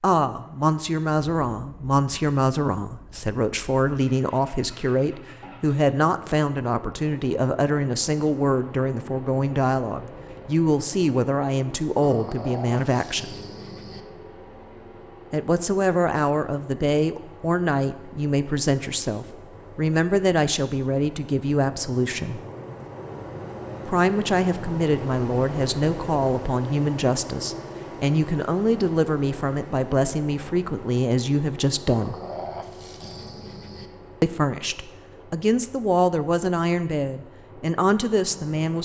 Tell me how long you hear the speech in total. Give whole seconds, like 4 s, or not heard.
33 s.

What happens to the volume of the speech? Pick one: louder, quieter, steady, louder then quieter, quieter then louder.
steady.